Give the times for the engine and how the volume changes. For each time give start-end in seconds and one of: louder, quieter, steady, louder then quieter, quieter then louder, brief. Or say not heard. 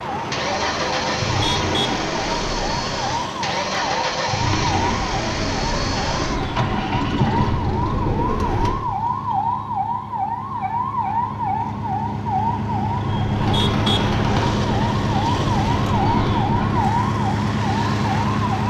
0.1-18.6 quieter then louder.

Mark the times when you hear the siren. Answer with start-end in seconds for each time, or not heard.
0.0-18.6.